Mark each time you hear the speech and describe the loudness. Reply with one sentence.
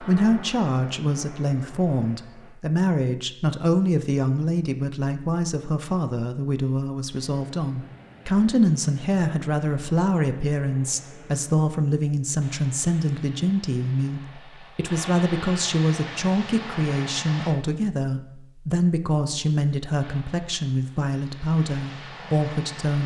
You can hear the speech from 0.0 to 23.0 s, at a steady volume.